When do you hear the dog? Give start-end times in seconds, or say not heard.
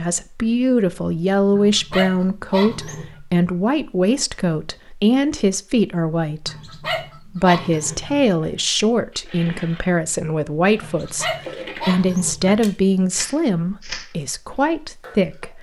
1.5-3.2, 6.5-8.2, 10.8-12.6.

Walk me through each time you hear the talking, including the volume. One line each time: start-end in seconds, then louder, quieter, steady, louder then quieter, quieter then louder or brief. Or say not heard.
0.0-15.5 steady.